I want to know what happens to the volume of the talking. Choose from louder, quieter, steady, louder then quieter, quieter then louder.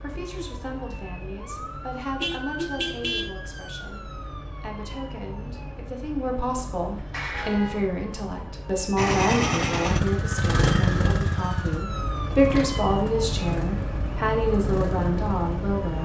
louder.